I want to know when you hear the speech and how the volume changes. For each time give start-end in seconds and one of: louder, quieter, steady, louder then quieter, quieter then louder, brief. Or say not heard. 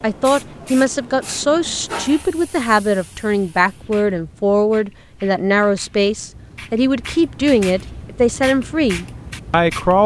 0.0-10.0 steady.